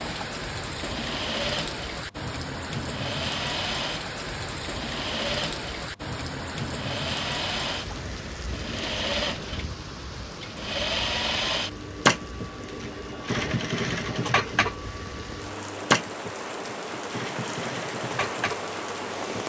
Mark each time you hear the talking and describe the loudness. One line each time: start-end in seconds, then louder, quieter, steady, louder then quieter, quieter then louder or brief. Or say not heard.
not heard.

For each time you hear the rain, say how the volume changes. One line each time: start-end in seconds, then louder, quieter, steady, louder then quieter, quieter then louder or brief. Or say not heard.
0.0-19.4 quieter then louder.